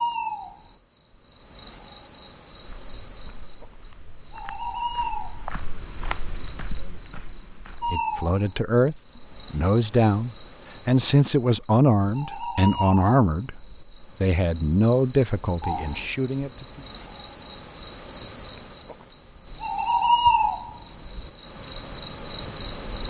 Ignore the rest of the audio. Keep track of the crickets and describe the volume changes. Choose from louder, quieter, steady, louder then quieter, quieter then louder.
louder.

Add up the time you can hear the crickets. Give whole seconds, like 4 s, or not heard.
23 s.